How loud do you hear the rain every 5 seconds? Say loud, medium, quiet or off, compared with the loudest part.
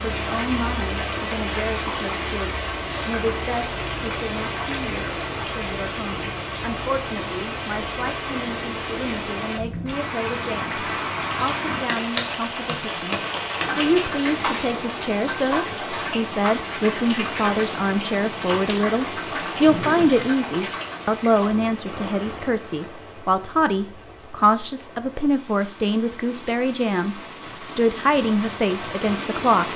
loud, loud, loud, loud, medium, medium.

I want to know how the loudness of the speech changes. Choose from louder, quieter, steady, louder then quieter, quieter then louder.
louder.